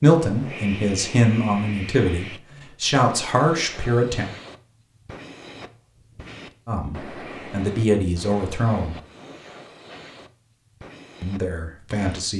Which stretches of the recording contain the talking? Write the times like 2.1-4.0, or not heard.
0.0-4.3, 6.7-8.9, 11.2-12.3.